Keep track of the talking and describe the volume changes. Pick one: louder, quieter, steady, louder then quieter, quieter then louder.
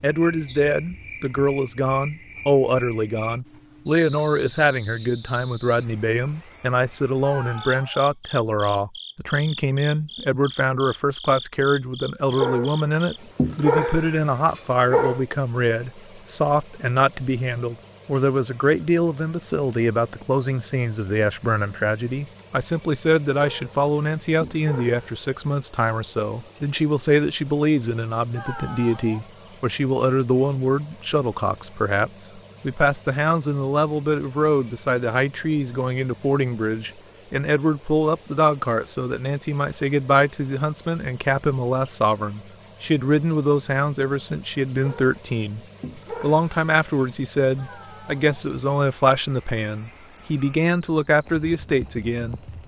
steady.